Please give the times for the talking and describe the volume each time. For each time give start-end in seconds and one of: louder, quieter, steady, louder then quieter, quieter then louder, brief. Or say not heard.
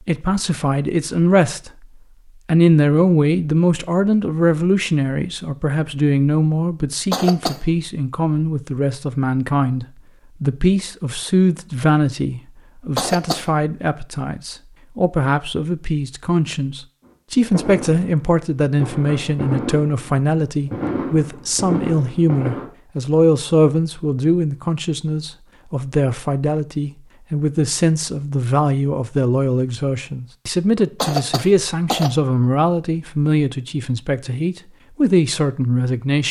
0.1-1.9 brief
2.5-36.2 steady.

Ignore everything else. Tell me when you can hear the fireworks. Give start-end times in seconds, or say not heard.
17.1-22.6.